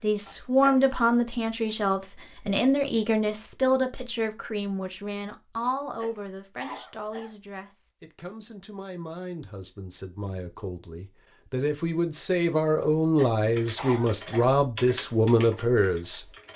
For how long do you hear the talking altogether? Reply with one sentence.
You can hear the talking for 16 seconds altogether.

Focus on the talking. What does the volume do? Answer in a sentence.
The loudness of the talking goes down, then up.